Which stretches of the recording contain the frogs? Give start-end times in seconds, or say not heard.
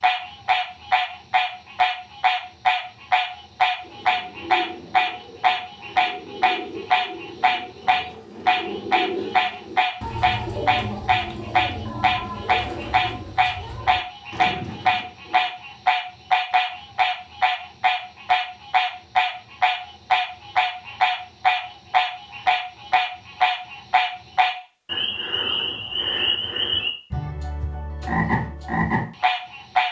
0.0-29.8.